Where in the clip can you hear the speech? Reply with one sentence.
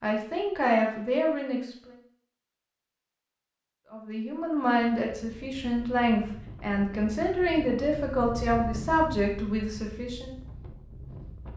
The speech can be heard from 0.0 to 1.9 s and from 3.9 to 10.3 s.